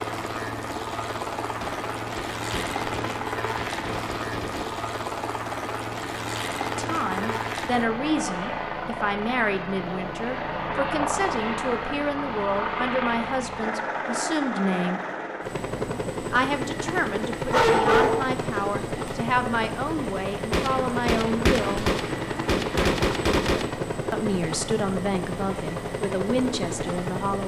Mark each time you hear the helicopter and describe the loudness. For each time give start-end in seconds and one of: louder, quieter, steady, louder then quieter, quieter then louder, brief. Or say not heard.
0.0-27.4 steady.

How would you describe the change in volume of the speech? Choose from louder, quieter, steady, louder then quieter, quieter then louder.
steady.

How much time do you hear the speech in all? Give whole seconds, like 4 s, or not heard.
17 s.